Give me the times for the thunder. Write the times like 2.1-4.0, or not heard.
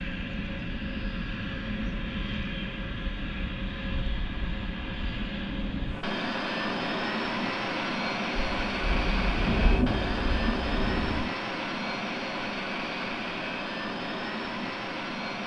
8.6-11.2.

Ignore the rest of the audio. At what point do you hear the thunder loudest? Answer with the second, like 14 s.
10 s.